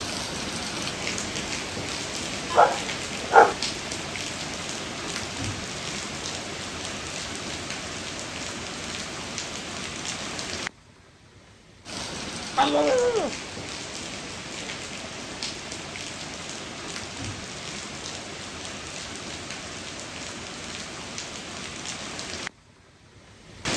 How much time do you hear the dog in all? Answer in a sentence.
You can hear the dog for 2 seconds altogether.